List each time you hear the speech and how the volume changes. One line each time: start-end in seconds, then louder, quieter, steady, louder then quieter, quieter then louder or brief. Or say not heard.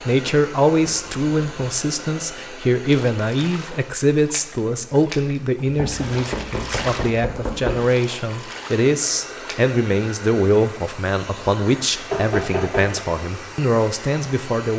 0.1-14.7 steady.